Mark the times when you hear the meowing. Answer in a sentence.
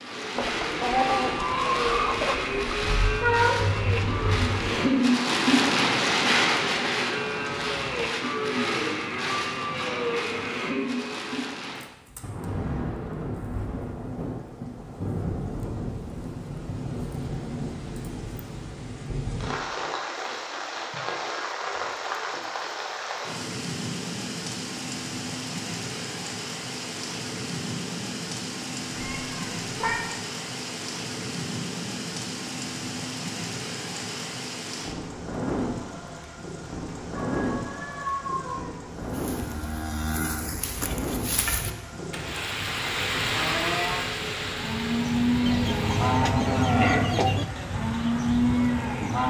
You can hear the meowing from 2.8 to 4.8 s, from 28.9 to 30.0 s and from 37.1 to 38.8 s.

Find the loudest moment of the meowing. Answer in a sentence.
The volume of the meowing peaks at 3 seconds.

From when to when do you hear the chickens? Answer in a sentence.
You can hear the chickens from 0.3 to 3.0 s and from 45.5 to 47.5 s.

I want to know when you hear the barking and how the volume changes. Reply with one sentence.
You can't hear the barking here.